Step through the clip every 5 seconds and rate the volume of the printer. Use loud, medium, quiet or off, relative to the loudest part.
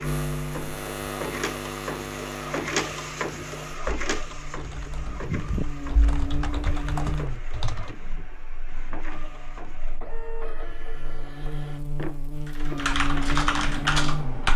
loud, medium, medium.